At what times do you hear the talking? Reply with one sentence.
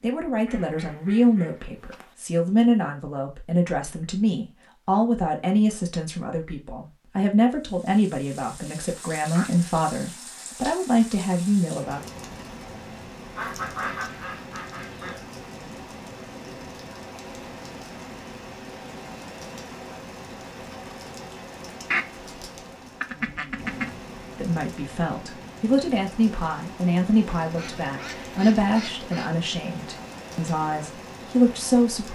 You can hear the talking from 0.0 to 12.1 s and from 24.4 to 32.1 s.